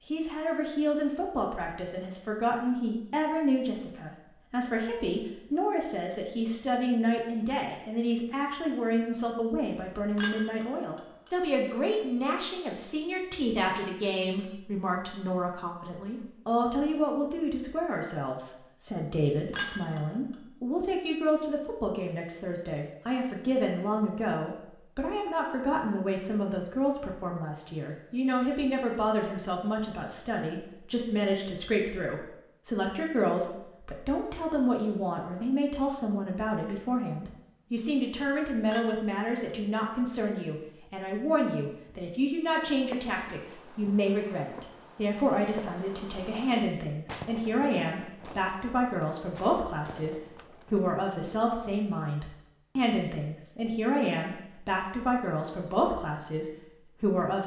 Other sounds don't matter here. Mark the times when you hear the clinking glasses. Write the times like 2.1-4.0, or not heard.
10.2-11.0, 19.5-20.0, 38.6-39.1.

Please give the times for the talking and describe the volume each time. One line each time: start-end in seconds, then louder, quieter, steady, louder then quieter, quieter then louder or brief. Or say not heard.
0.1-57.4 steady.